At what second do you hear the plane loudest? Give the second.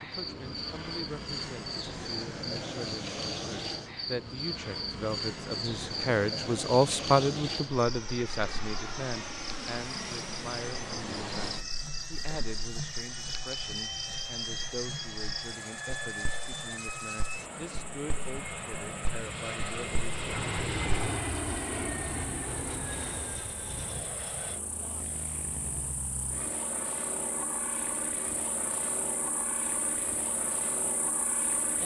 21 s.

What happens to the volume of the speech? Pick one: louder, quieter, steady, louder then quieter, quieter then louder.
louder then quieter.